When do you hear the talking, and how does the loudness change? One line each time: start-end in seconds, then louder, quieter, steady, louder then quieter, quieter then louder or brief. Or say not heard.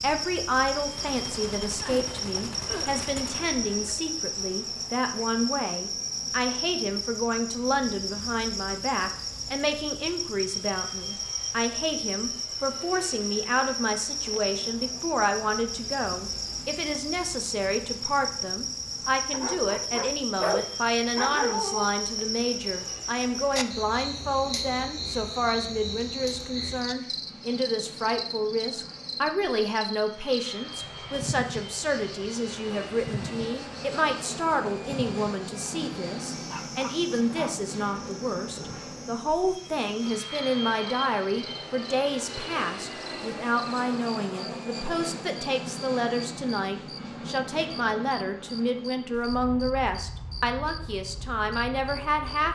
0.0-52.4 steady.